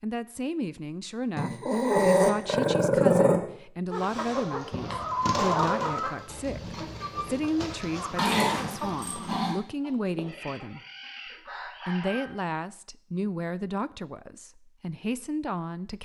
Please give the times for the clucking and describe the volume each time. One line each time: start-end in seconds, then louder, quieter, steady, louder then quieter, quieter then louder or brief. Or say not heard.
3.9-12.3 quieter.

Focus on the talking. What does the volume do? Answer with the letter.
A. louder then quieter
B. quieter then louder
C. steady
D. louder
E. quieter
C.